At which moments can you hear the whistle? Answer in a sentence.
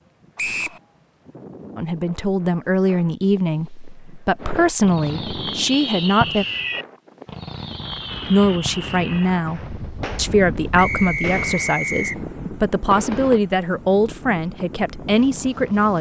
The whistle can be heard from 0.3 to 0.8 s, from 5.8 to 6.7 s and from 10.8 to 12.2 s.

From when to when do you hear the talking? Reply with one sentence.
The talking can be heard from 1.8 to 6.5 s and from 8.3 to 15.9 s.